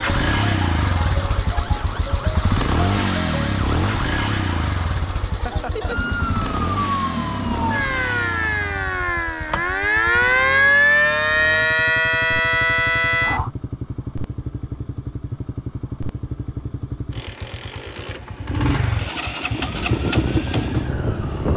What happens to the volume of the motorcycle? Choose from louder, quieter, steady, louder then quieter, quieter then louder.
quieter then louder.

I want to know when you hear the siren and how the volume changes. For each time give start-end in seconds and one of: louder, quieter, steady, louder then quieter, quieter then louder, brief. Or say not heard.
0.0-13.5 louder
19.6-21.5 brief.